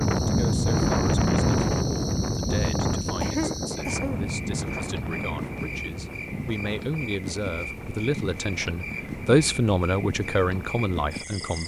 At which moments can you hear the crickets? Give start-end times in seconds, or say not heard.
0.0-11.6.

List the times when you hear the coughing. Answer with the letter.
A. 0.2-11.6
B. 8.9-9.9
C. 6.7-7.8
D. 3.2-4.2
D.